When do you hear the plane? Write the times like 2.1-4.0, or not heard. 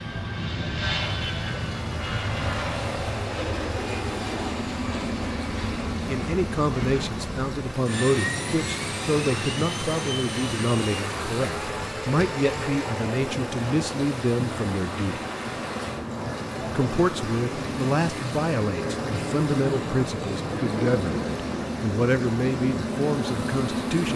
0.0-24.1.